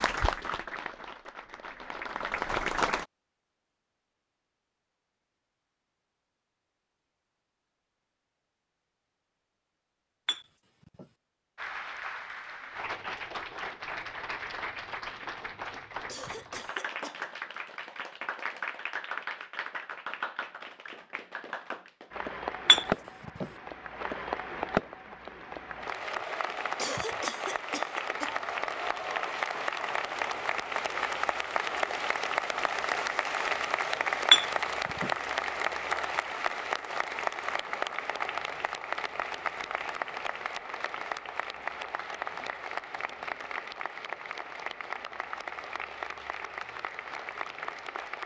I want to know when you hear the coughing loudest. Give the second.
27 s.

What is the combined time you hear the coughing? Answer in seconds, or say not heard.
3 s.